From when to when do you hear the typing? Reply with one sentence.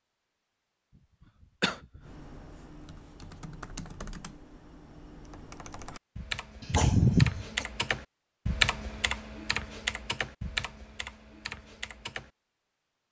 You can hear the typing from 2.0 to 12.3 s.